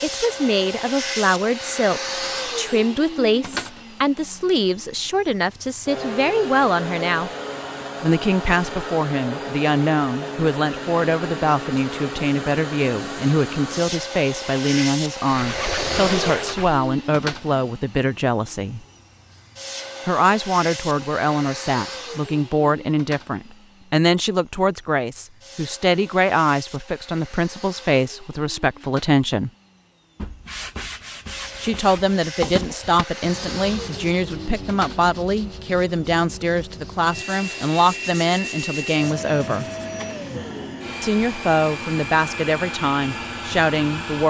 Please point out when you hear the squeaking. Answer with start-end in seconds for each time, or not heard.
15.2-16.8.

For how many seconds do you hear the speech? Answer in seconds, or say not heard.
39 s.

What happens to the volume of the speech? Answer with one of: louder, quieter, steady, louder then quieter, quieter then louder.
steady.